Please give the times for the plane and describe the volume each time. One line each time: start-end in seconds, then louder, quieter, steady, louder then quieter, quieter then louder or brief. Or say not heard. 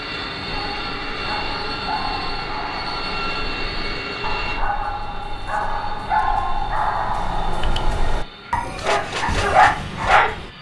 0.0-10.5 quieter.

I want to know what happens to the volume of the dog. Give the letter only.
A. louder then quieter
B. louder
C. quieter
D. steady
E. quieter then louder
B.